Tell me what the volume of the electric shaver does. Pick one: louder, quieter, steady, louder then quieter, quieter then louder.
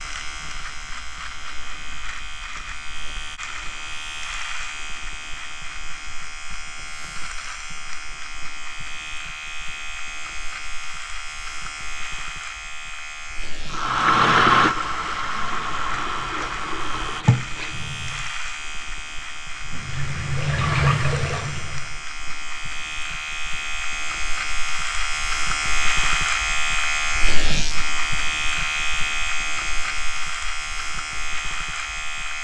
louder.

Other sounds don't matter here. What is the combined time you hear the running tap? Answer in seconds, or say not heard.
7 s.